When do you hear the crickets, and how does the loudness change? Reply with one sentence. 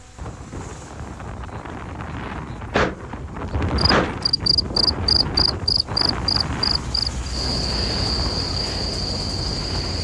The crickets can be heard from 3.8 to 9.9 s, getting quieter.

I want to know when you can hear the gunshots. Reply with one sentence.
The gunshots can be heard from 2.7 to 4.2 s.